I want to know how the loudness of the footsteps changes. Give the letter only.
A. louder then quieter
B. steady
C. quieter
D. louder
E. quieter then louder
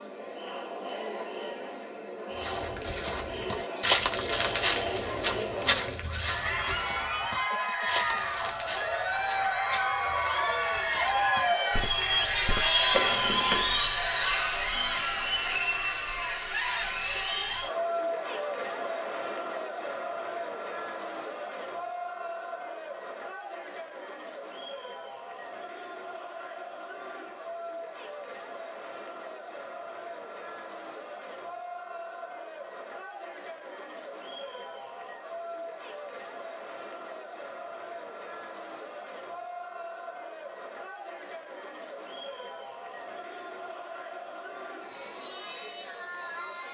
E.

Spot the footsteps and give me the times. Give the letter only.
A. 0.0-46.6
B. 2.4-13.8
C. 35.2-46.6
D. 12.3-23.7
B.